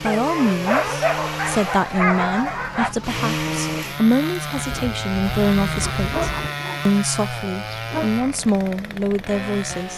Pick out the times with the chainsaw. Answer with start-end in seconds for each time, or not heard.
0.0-9.9.